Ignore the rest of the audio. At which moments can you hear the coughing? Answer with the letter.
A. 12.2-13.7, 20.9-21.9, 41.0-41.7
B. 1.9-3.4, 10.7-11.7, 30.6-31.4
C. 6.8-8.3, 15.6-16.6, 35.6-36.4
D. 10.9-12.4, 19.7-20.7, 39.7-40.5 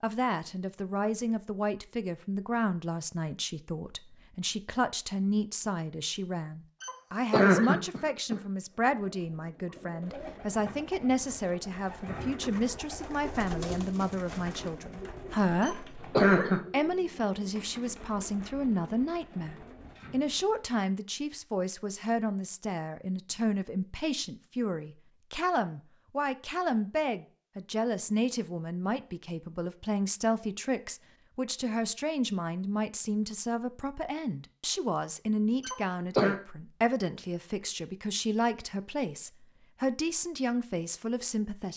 C.